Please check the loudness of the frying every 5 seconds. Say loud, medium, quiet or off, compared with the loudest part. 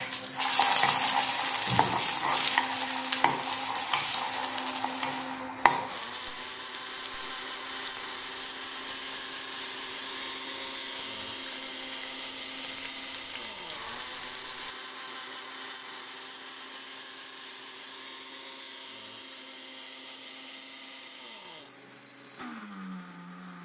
loud, medium, quiet, off, off.